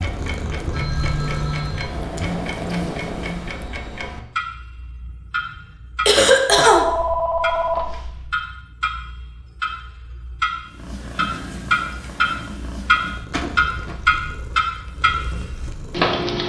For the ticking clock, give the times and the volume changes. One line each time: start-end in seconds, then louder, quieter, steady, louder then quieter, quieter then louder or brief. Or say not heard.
0.0-16.4 louder.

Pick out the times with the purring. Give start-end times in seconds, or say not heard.
0.0-3.8, 10.7-16.1.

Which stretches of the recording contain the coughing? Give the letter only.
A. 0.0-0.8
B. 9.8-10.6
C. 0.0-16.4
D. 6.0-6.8
D.